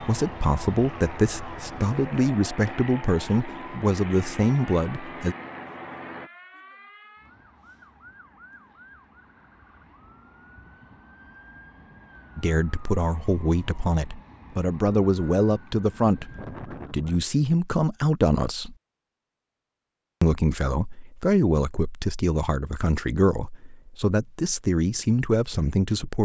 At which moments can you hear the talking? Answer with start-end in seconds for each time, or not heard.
0.0-5.3, 12.3-18.8, 20.2-26.2.